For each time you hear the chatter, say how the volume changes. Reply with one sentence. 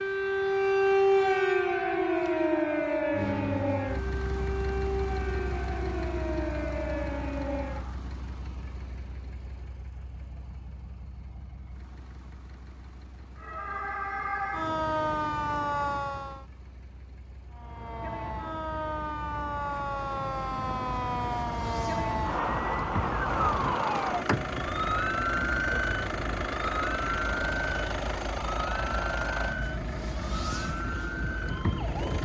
You can't hear the chatter here.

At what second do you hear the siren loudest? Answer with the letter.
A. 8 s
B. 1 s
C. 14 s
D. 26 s
B.